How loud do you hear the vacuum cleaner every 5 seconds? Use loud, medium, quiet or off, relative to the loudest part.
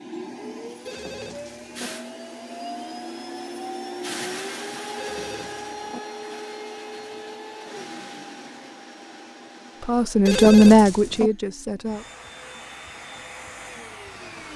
loud, loud, medium.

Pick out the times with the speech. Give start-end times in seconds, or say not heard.
9.8-12.1.